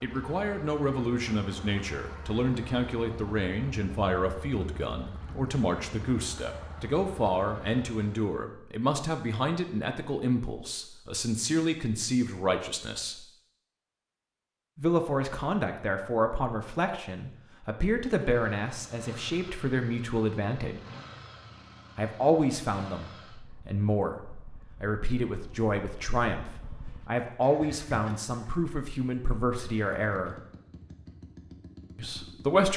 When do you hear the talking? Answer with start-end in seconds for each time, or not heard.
0.0-13.2, 14.8-20.8, 21.9-30.4, 31.9-32.7.